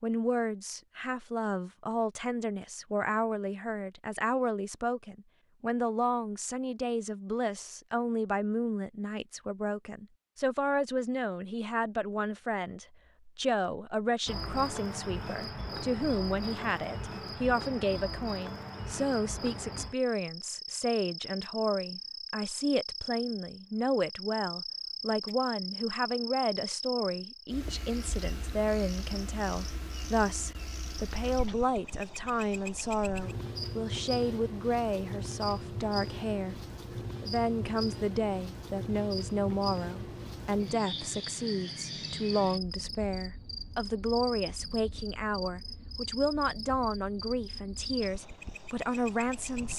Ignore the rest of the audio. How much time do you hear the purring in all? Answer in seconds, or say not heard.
not heard.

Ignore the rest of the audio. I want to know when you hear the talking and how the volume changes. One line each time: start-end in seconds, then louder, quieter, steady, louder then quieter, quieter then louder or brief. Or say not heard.
0.0-36.5 steady
37.2-49.7 steady.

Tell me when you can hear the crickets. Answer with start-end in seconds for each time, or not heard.
14.2-49.7.